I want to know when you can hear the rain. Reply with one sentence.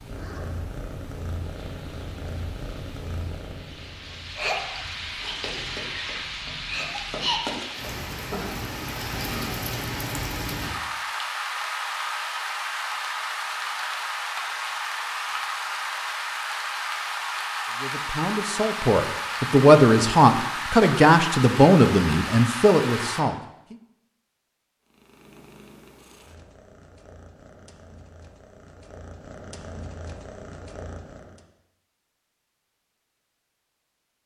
You can hear the rain from 0.0 to 23.2 s.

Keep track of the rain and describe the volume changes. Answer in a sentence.
The volume of the rain goes up.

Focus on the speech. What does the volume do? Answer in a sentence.
The loudness of the speech goes up, then down.